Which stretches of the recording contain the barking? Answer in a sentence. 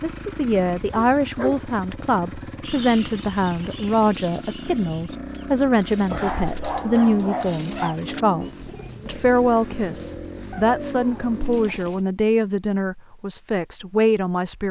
The barking can be heard from 0.9 to 1.6 s, from 6.0 to 8.0 s and from 10.6 to 11.4 s.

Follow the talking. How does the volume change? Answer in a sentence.
The volume of the talking stays about the same.